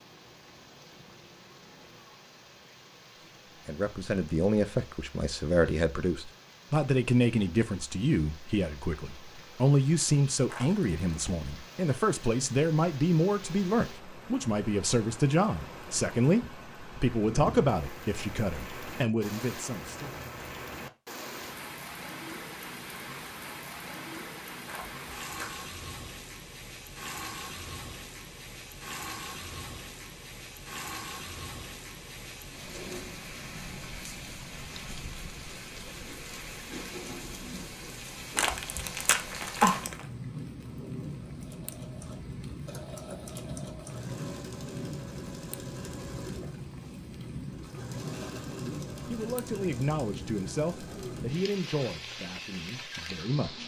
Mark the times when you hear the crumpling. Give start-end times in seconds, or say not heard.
10.4-11.2, 24.6-25.6, 38.4-40.0.